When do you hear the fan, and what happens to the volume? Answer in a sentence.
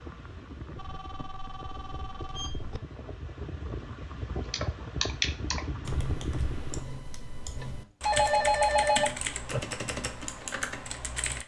The fan can be heard from 0.0 to 6.8 s, getting louder.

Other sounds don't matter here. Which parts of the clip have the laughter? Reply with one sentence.
You can't hear the laughter here.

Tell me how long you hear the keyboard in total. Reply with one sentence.
The keyboard can be heard for 7 seconds in total.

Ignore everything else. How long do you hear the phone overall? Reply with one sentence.
You can hear the phone for 4 seconds altogether.